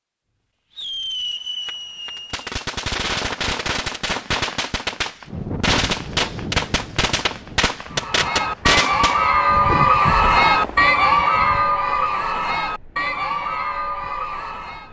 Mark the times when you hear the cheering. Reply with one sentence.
You can hear the cheering from 7.9 to 14.8 s.